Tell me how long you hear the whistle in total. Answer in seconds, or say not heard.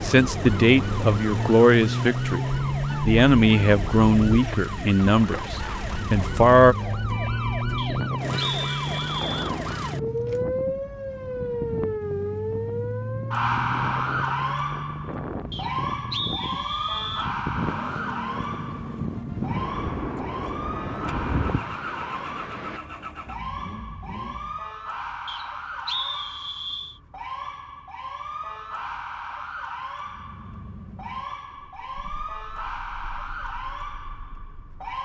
5 s.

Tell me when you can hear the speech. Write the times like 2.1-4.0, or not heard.
0.0-6.8.